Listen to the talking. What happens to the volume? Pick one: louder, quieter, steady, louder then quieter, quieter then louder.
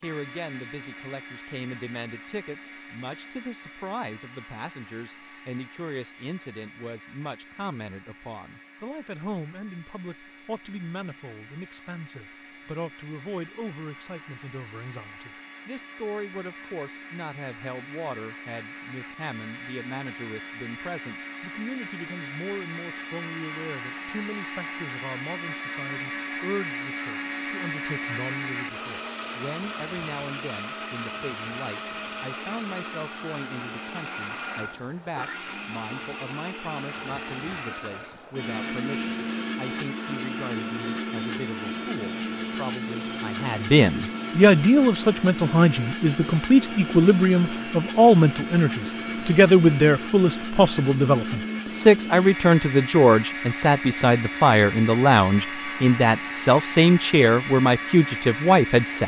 louder.